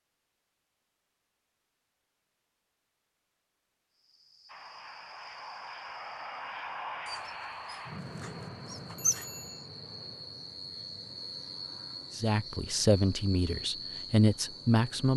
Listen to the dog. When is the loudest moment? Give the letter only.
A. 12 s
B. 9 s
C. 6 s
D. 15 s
B.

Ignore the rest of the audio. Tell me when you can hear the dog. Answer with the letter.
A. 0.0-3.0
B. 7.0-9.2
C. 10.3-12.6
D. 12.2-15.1
B.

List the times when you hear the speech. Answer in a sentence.
You can hear the speech from 12.2 to 15.1 s.